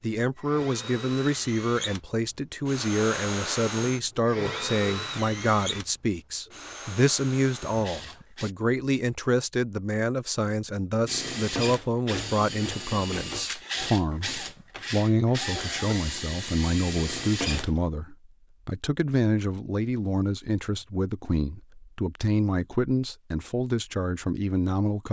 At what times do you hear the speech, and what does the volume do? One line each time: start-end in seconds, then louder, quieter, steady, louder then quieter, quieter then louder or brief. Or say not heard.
0.0-25.0 steady.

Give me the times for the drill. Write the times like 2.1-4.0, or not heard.
0.3-8.6, 11.1-17.8.